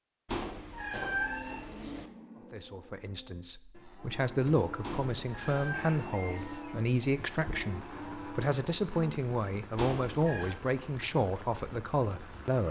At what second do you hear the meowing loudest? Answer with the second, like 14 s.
1 s.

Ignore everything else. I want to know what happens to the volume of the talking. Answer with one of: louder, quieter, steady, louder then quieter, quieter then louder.
steady.